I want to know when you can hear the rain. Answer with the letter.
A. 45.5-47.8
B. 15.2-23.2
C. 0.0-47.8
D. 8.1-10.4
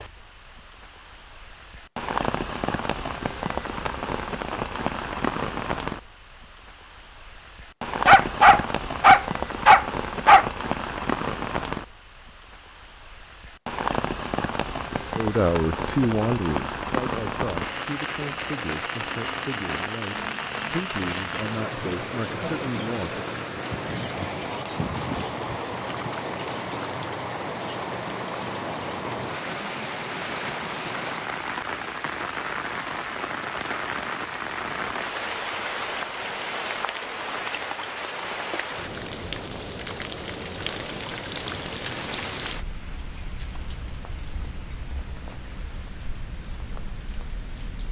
C.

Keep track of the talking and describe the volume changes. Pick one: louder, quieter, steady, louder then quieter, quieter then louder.
quieter.